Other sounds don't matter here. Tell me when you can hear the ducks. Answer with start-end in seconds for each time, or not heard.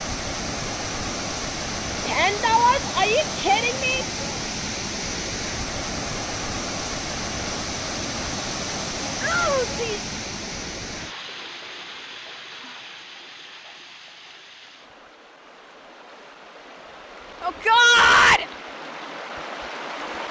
not heard.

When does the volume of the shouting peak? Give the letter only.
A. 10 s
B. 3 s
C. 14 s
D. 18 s
D.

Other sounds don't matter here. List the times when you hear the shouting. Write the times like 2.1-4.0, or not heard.
2.0-4.0, 9.2-10.1, 17.4-18.4.